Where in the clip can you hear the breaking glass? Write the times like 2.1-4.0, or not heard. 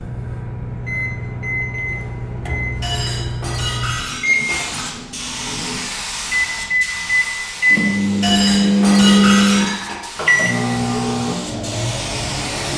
2.8-4.8, 8.2-9.9.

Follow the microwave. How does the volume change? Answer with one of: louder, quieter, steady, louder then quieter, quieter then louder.
louder then quieter.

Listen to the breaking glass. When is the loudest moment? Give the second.
9 s.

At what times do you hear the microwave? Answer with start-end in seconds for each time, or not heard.
0.0-12.7.